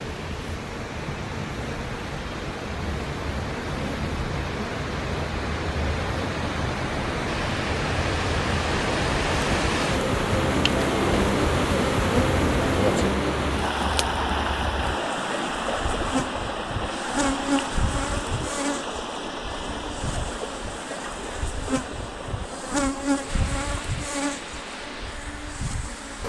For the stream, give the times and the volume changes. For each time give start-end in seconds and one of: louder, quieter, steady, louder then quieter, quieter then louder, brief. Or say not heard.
0.0-26.2 louder then quieter.